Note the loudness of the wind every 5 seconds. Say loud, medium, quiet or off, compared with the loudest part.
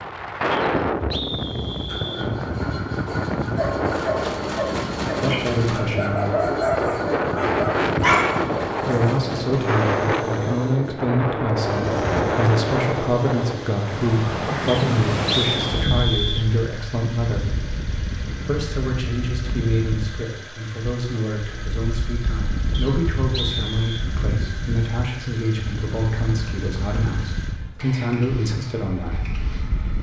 loud, loud, loud, medium, medium, medium.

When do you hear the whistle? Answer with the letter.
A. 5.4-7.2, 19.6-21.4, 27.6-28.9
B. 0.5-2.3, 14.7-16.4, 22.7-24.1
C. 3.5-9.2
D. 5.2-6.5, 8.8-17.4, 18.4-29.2
B.